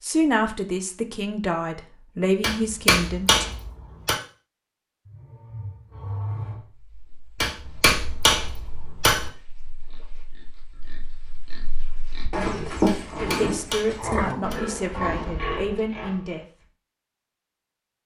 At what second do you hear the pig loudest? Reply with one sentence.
The loudest moment of the pig is at 13 seconds.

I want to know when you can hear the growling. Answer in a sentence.
You can hear the growling from 5.0 to 6.7 s and from 13.9 to 15.1 s.